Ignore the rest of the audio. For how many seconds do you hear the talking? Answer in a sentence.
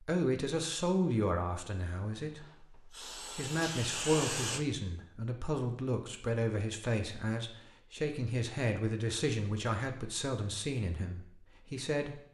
The talking can be heard for 12 seconds in total.